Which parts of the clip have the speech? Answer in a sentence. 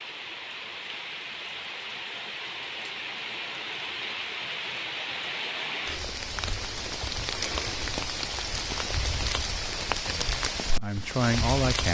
The speech can be heard from 9.9 to 11.8 s.